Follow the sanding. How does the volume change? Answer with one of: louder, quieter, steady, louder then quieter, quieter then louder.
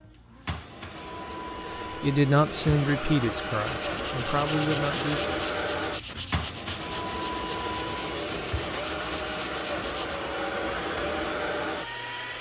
steady.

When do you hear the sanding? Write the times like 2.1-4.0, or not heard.
3.5-10.2.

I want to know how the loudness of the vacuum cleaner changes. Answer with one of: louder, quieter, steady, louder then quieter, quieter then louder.
louder.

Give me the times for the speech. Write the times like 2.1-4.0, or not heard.
2.0-5.5.